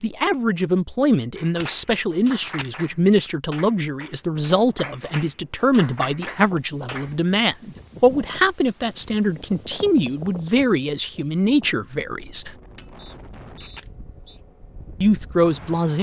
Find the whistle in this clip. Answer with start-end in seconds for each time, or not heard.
12.9-14.4.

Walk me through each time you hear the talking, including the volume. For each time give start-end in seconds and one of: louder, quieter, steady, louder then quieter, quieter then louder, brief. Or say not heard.
0.0-12.5 steady
15.0-15.9 brief.